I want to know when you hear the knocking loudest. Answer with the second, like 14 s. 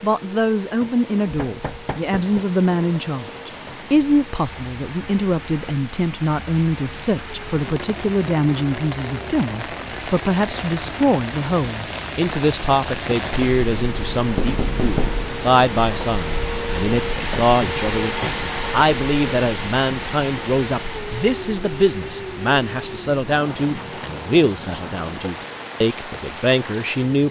15 s.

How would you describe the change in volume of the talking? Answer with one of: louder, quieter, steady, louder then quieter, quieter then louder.
steady.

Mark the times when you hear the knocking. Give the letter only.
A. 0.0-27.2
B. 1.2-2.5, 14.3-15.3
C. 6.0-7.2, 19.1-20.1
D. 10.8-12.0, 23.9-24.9
B.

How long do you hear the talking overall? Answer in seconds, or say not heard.
27 s.